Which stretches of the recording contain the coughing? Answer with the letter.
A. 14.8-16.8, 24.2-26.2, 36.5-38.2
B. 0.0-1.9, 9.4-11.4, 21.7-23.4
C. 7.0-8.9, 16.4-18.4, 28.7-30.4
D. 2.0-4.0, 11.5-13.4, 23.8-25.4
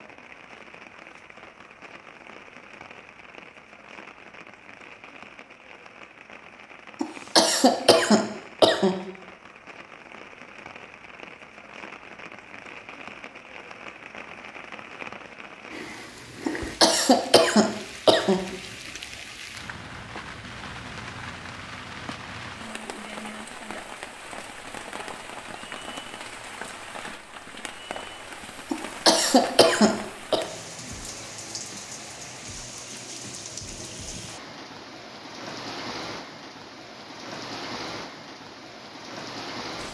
C.